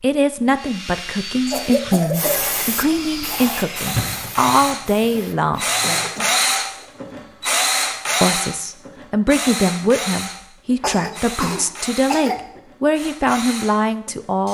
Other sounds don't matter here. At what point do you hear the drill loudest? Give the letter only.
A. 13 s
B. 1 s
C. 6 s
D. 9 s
C.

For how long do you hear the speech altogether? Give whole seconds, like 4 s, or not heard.
12 s.